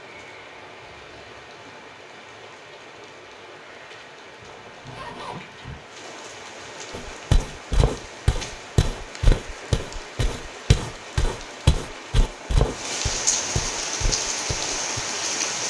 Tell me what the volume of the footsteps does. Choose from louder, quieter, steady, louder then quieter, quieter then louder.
quieter.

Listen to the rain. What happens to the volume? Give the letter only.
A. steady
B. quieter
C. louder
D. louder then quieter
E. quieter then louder
C.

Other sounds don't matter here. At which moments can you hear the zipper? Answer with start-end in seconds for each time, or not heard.
4.4-5.8.